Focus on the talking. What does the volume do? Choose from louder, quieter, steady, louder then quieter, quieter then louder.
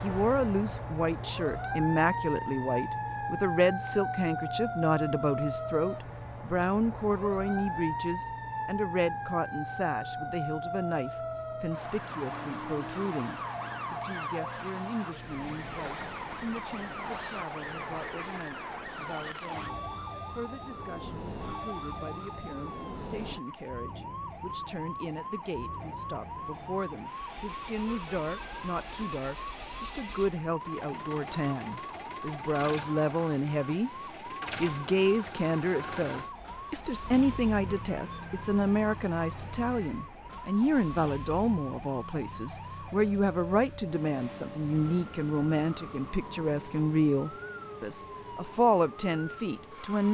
quieter then louder.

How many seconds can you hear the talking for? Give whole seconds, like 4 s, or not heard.
49 s.